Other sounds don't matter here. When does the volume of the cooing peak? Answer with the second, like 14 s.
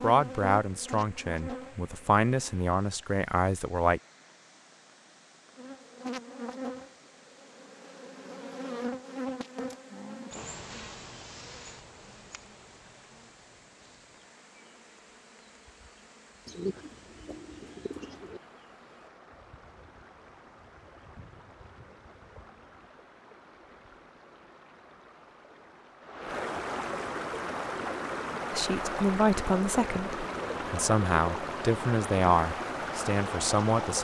17 s.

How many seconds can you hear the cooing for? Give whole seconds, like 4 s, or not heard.
2 s.